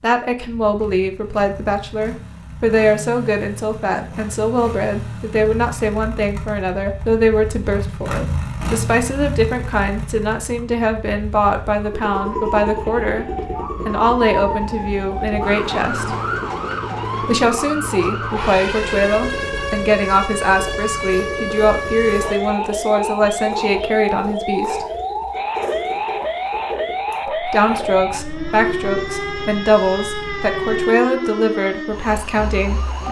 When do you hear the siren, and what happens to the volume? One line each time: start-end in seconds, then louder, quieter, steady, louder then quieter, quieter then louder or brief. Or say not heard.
12.0-33.0 steady.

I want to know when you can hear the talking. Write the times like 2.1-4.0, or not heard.
0.0-13.2, 13.8-16.1, 17.2-24.9, 27.2-33.0.